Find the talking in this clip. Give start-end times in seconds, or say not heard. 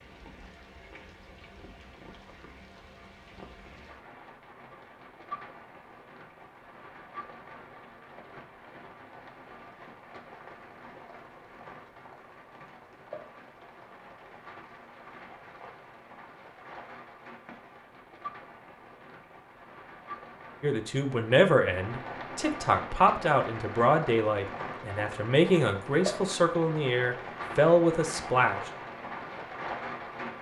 20.6-28.6.